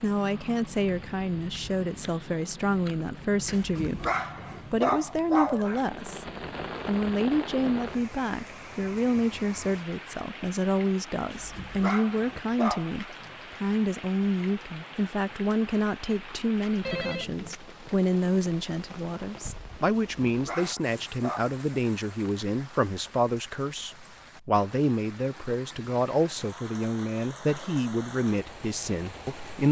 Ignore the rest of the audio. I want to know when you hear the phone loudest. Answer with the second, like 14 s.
17 s.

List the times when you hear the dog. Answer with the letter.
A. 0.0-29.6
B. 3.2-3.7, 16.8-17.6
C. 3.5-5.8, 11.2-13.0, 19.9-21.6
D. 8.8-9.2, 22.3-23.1
C.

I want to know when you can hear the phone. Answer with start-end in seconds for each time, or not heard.
3.2-3.7, 16.8-17.6.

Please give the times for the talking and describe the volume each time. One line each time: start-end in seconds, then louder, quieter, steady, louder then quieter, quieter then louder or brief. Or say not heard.
0.0-29.6 steady.